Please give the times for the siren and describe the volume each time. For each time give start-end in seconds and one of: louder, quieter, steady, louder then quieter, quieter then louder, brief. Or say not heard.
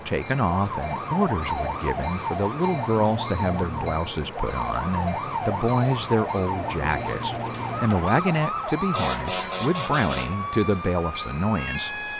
0.0-12.1 steady.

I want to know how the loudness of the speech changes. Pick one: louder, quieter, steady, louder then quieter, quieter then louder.
steady.